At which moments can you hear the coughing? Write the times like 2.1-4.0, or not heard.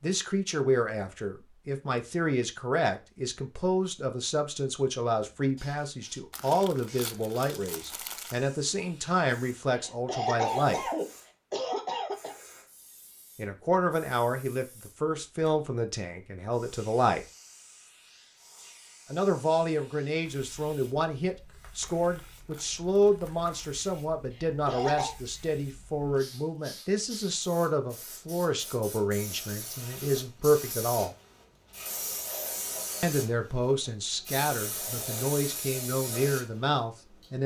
9.8-12.3, 24.3-25.1.